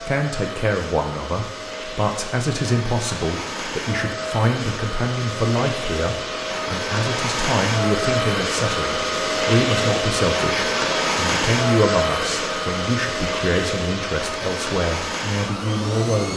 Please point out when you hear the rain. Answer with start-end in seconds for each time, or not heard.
not heard.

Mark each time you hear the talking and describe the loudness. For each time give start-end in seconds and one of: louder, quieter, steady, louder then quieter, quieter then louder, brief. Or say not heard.
0.0-16.3 steady.